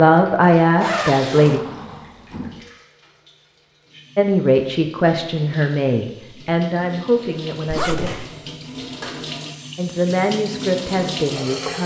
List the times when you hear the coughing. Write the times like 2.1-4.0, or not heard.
not heard.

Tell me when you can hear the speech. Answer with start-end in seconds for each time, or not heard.
0.0-1.6, 4.2-8.1, 9.8-11.8.